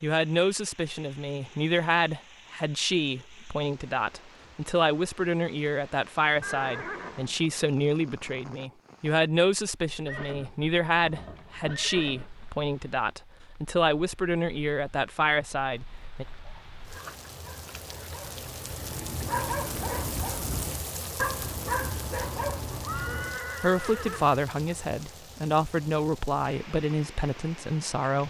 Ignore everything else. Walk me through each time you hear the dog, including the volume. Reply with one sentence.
The dog can be heard from 16.4 to 23.4 s, getting louder.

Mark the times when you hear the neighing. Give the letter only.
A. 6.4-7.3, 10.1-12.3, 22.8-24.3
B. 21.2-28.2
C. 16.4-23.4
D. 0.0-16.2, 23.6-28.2
A.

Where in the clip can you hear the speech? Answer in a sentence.
You can hear the speech from 0.0 to 16.2 s and from 23.6 to 28.2 s.